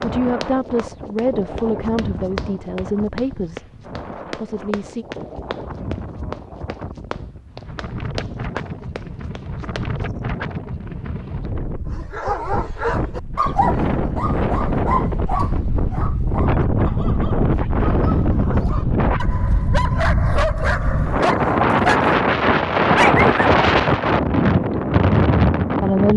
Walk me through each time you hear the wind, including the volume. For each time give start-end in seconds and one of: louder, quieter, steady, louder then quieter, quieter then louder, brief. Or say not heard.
0.0-26.1 louder.